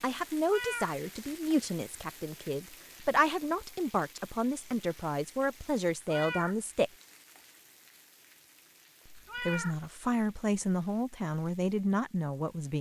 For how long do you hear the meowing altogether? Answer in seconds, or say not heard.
2 s.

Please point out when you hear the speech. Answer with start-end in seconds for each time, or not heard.
0.0-6.9, 9.1-12.7.